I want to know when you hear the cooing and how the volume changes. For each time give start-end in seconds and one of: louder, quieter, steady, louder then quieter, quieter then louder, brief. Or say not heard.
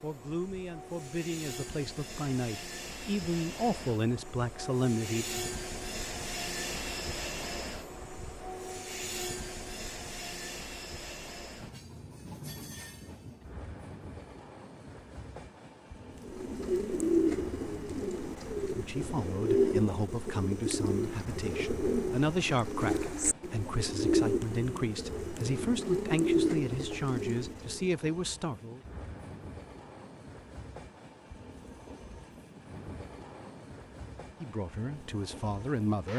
16.2-27.9 steady.